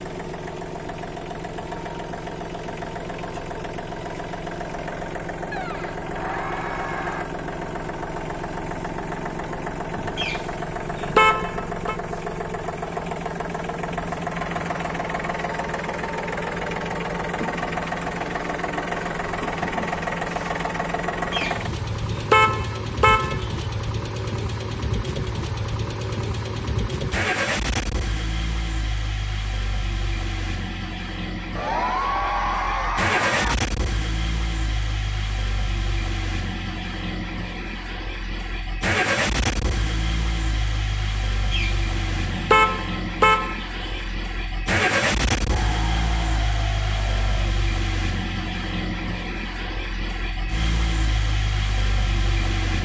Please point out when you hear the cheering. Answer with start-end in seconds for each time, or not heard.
5.5-7.2, 31.6-33.5, 45.5-47.5.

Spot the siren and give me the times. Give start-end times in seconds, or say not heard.
not heard.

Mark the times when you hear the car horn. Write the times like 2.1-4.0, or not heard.
10.2-11.9, 21.3-23.5, 41.5-44.0.